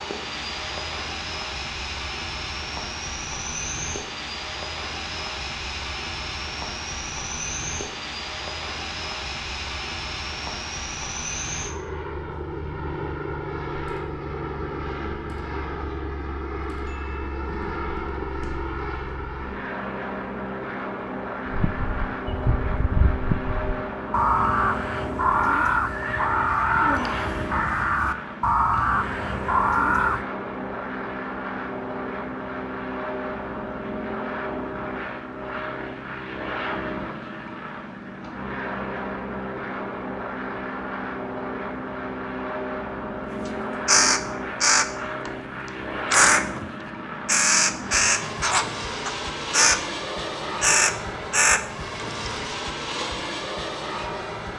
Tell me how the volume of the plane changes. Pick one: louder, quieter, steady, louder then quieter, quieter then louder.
steady.